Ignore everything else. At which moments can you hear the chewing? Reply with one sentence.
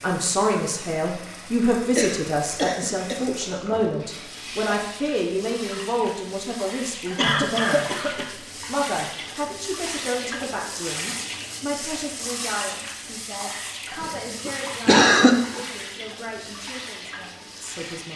You can't hear the chewing here.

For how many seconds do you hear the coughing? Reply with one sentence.
The coughing can be heard for 4 seconds in total.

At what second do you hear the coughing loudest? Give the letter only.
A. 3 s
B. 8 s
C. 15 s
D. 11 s
C.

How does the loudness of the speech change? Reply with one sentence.
The volume of the speech goes down.